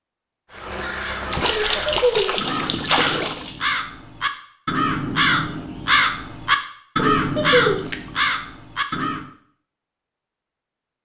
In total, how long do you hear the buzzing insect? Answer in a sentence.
You can't hear the buzzing insect here.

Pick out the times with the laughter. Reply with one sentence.
The laughter can be heard from 1.7 to 2.4 s and from 7.0 to 7.8 s.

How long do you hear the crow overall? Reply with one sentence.
The crow can be heard for 9 seconds in total.